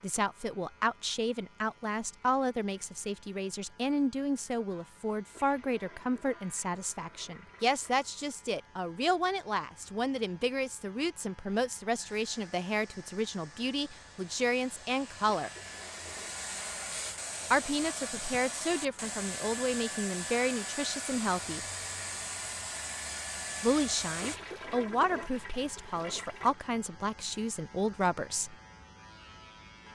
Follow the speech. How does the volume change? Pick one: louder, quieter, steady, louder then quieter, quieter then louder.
steady.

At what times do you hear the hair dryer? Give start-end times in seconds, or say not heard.
11.9-24.4.